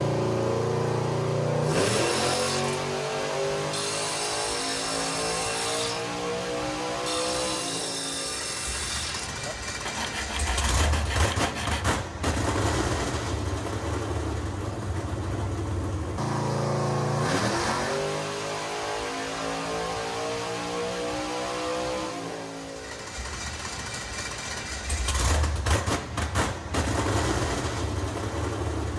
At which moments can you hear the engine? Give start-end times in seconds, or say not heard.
0.0-28.9.